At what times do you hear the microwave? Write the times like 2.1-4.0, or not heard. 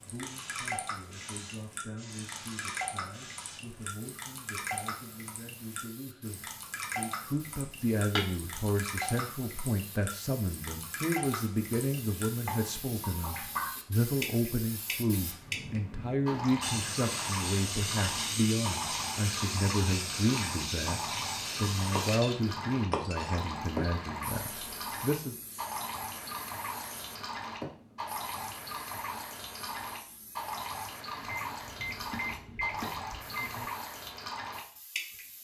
31.1-33.7.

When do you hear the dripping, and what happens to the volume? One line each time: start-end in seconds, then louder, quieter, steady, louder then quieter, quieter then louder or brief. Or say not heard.
0.0-35.2 steady.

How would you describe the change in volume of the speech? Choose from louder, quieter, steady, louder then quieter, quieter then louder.
louder.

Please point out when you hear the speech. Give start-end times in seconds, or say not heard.
0.0-25.4.